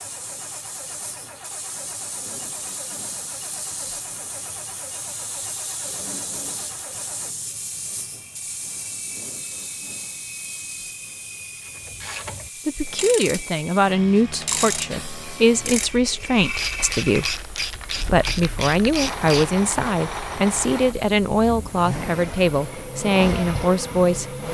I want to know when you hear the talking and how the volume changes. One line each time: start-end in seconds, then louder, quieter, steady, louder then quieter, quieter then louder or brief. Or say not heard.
12.7-24.3 steady.